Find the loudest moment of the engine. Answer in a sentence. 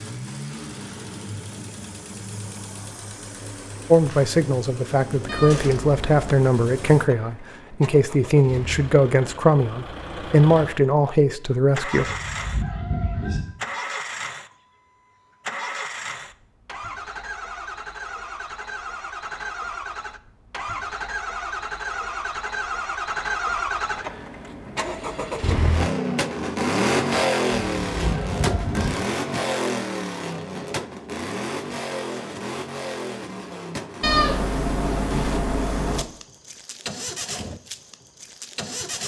The volume of the engine peaks at 27 seconds.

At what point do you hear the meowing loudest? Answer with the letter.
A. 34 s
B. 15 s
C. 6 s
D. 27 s
A.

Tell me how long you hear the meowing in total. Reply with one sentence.
The meowing can be heard for 3 seconds in total.